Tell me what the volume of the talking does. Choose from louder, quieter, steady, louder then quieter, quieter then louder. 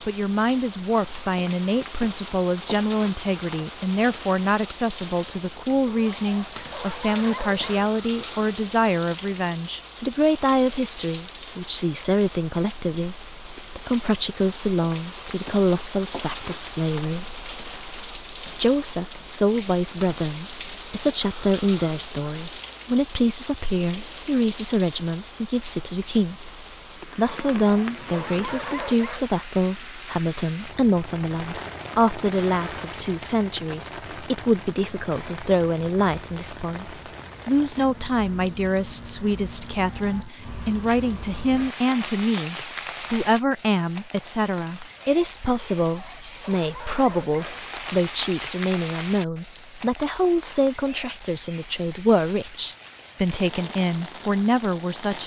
steady.